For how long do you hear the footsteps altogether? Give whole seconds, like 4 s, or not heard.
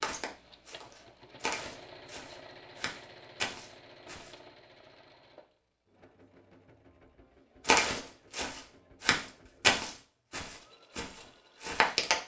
9 s.